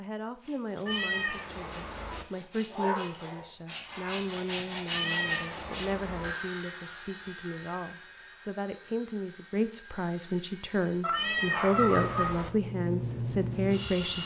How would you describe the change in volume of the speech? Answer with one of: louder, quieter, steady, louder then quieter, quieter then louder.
louder.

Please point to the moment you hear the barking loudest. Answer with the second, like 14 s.
12 s.